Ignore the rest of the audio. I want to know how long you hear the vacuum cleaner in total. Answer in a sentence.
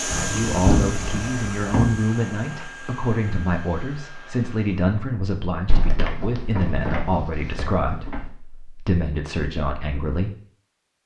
The vacuum cleaner can be heard for 5 seconds in total.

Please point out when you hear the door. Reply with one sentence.
The door can be heard from 0.1 to 2.0 s and from 5.7 to 8.3 s.